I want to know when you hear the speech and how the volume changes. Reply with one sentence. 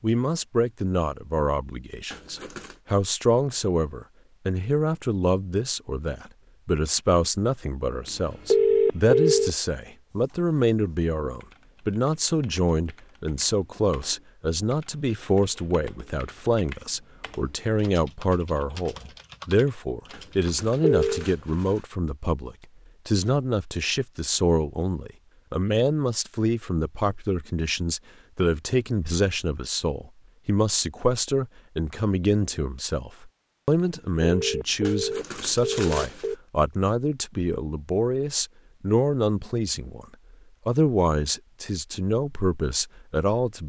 You can hear the speech from 0.0 to 40.0 s, at a steady volume; and briefly from 40.6 to 43.6 s.